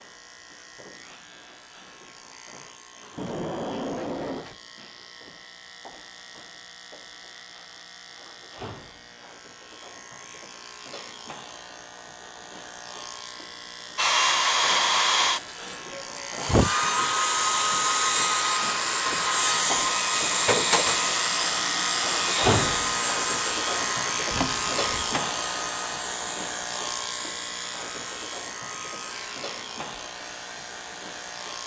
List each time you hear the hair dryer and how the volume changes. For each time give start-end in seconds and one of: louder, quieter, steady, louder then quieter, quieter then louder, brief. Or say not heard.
13.9-31.6 quieter.